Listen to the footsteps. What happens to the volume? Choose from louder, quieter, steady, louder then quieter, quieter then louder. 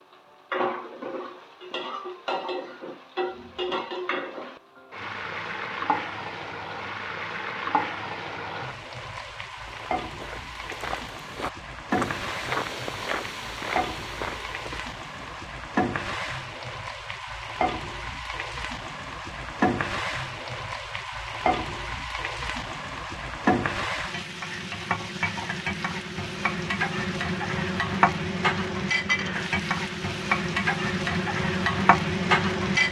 louder then quieter.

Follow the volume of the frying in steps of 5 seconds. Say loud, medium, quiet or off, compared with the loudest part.
medium, medium, medium, medium, medium, loud, loud.